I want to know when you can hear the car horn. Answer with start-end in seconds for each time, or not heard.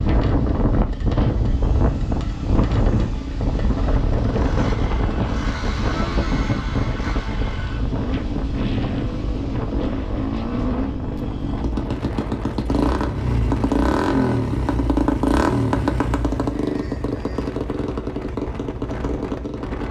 not heard.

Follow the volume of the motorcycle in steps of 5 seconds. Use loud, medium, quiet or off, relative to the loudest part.
medium, medium, loud, loud.